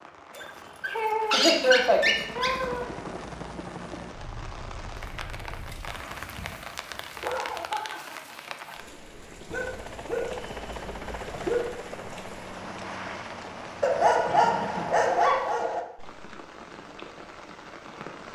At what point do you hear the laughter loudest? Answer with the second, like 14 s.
2 s.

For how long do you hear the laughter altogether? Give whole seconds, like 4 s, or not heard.
3 s.